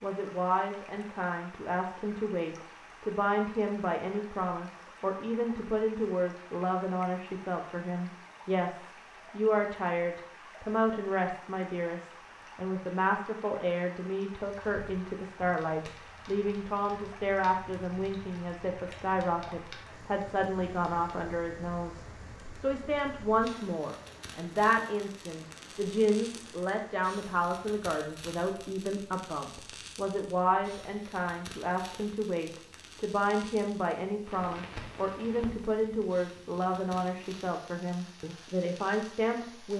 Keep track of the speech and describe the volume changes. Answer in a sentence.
The volume of the speech stays about the same.